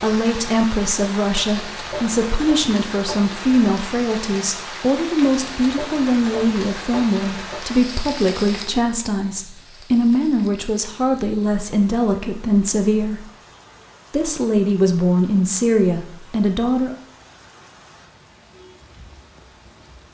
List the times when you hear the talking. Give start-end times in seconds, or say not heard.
0.0-13.2, 14.1-16.9.